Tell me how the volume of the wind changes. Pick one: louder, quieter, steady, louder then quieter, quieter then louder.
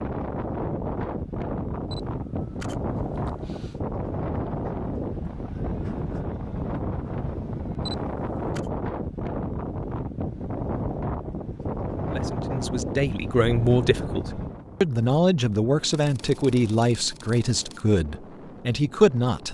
quieter.